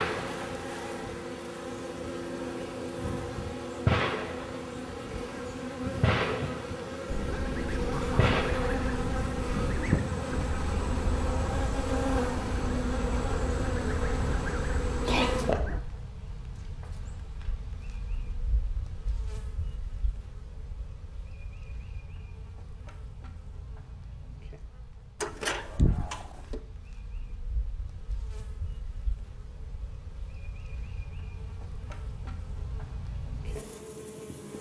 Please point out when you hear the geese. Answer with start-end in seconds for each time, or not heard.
7.0-15.8.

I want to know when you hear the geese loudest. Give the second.
10 s.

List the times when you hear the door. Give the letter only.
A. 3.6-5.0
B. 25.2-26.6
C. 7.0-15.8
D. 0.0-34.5
B.